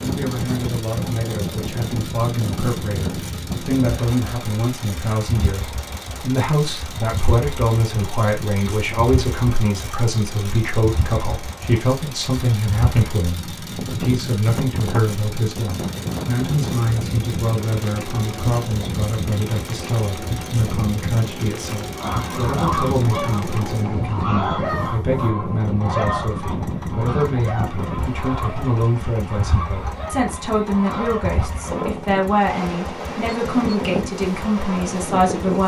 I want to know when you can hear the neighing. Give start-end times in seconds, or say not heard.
22.0-24.1.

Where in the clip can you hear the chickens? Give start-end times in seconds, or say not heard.
21.9-31.5.